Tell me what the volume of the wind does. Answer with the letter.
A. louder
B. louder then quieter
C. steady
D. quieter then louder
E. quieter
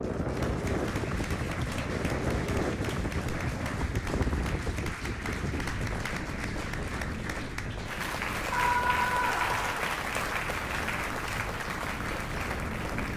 E.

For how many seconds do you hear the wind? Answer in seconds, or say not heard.
13 s.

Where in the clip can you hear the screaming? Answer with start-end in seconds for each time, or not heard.
8.5-9.8.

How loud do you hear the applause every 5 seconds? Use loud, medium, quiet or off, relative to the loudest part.
medium, loud, loud.